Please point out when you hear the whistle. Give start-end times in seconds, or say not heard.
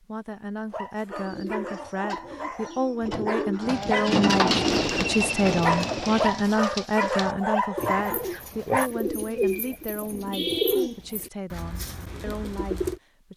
not heard.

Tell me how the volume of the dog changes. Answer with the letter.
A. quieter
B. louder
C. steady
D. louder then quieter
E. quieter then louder
B.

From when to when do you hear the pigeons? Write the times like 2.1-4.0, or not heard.
1.1-13.0.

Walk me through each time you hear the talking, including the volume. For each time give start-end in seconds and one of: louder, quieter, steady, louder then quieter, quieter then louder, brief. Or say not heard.
0.0-13.3 louder then quieter.